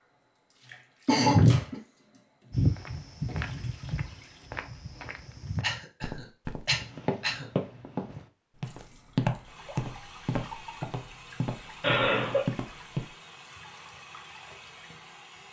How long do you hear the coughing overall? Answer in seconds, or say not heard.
3 s.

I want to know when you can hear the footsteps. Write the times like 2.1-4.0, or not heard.
2.5-13.1.